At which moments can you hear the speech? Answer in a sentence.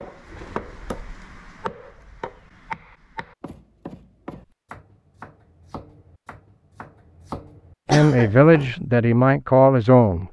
You can hear the speech from 7.9 to 10.2 s.